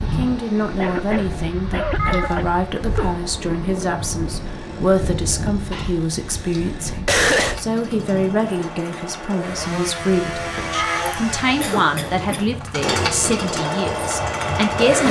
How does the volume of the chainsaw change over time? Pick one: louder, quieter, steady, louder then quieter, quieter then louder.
louder.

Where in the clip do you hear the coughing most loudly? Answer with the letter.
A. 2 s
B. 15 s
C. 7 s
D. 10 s
C.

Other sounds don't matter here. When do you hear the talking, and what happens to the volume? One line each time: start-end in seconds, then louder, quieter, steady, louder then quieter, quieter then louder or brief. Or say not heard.
0.0-15.0 steady.